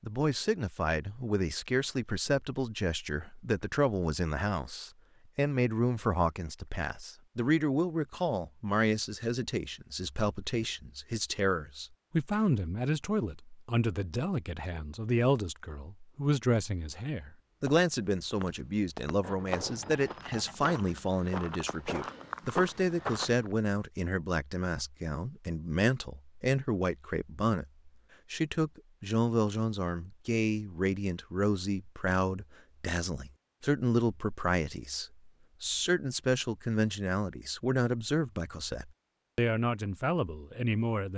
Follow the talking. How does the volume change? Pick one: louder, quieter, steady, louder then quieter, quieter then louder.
steady.